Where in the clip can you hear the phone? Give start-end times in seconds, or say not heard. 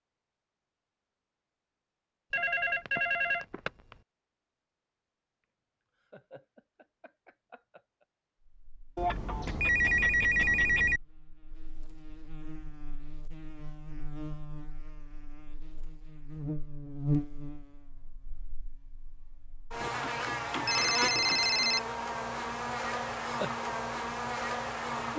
2.3-4.0, 8.9-11.0, 19.8-21.8.